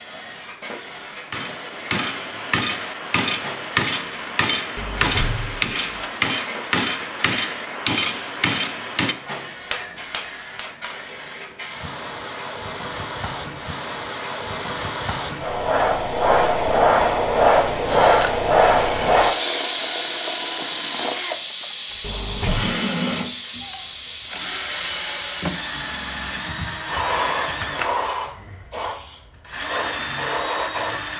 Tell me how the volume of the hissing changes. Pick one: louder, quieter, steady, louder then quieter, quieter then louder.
louder then quieter.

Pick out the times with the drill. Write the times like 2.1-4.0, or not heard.
17.9-31.1.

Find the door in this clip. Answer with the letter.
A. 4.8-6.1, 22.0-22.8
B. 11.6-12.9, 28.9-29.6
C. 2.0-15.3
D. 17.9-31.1
A.